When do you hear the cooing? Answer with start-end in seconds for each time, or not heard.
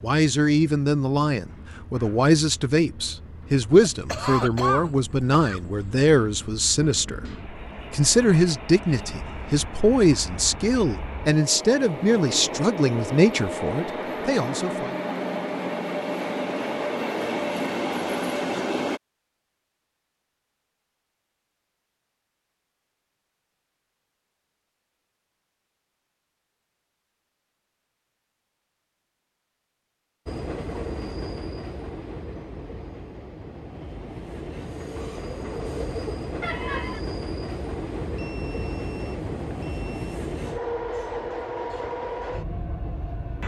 not heard.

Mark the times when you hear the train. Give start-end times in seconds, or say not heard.
0.0-19.0, 30.2-43.4.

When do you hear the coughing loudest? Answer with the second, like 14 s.
5 s.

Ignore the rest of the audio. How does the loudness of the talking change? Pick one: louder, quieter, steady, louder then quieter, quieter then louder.
steady.